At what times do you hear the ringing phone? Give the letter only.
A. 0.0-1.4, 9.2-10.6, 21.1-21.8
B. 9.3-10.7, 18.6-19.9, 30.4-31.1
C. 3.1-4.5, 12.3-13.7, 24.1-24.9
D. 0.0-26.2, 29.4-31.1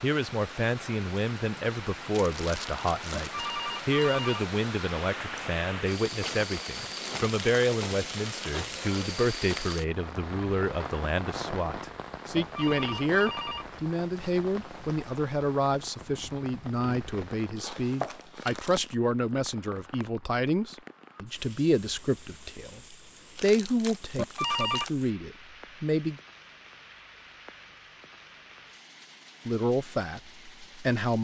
C.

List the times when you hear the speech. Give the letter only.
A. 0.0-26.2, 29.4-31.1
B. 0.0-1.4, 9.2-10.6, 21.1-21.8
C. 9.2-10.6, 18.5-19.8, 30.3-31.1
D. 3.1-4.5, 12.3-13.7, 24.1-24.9
A.